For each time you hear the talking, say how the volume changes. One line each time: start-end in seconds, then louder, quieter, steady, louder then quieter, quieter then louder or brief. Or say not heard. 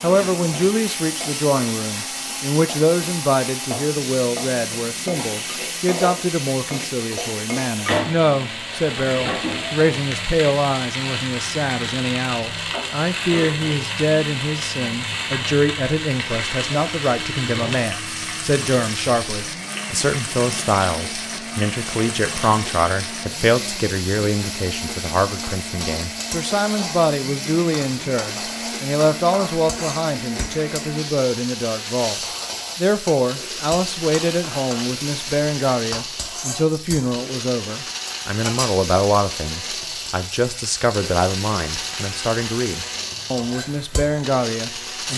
0.0-45.1 steady.